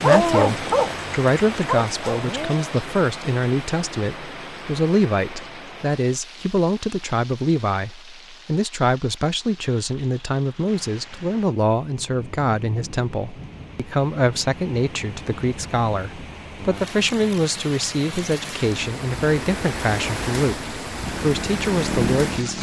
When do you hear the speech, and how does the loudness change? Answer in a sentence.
The speech can be heard from 0.0 to 22.5 s, at a steady volume.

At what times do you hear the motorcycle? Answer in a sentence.
You can hear the motorcycle from 21.1 to 22.5 s.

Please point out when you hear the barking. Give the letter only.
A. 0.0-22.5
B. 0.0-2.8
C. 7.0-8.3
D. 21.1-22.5
B.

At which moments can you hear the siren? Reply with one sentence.
You can't hear the siren here.